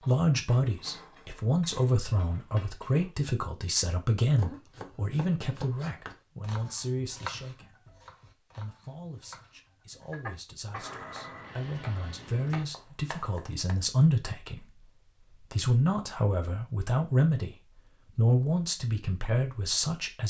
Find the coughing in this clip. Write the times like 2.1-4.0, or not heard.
10.0-11.0.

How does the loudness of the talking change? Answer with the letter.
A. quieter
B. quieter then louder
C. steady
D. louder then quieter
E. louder
B.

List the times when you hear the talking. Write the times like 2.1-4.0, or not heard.
0.1-20.2.